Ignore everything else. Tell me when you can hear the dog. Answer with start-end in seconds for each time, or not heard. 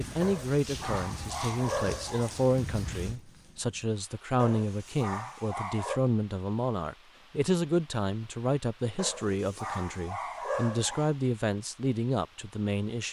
0.2-2.4, 4.3-6.0, 8.9-11.1.